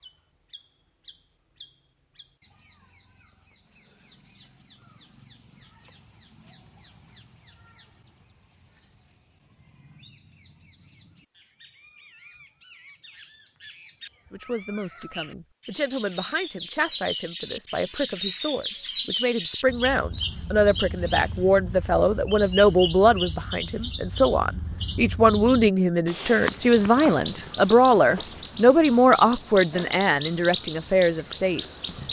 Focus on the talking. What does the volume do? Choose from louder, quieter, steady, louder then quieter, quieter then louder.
louder.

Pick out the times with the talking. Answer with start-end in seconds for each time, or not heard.
14.3-31.9.